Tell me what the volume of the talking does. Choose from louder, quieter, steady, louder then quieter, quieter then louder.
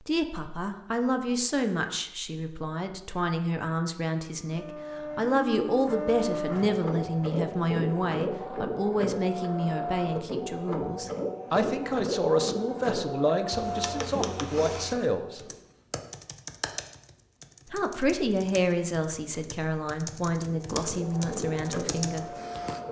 steady.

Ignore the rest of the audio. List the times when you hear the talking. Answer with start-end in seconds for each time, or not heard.
0.1-15.4, 17.7-22.2.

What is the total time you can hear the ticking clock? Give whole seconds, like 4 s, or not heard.
not heard.